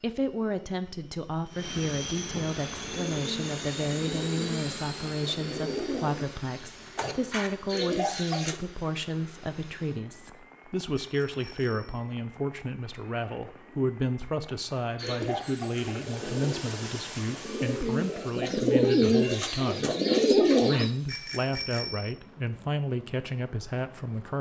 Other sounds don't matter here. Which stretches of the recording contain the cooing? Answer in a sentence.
You can hear the cooing from 2.7 to 8.6 s and from 14.9 to 20.9 s.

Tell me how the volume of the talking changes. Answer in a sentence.
The loudness of the talking stays about the same.